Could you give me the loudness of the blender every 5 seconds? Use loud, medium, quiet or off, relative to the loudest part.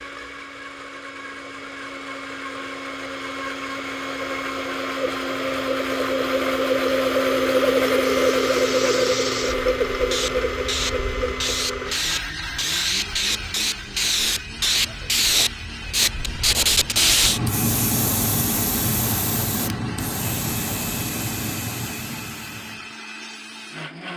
medium, loud, medium, quiet, quiet.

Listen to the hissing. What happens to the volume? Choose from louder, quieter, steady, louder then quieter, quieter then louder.
louder then quieter.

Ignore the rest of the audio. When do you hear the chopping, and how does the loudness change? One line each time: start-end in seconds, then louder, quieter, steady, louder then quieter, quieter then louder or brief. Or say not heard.
not heard.